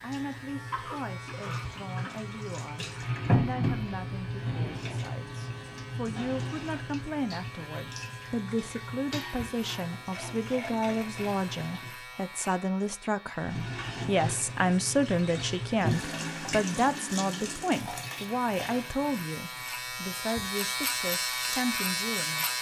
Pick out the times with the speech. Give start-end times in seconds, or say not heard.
0.0-22.4.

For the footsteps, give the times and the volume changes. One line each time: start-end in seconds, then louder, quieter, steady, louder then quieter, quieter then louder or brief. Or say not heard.
not heard.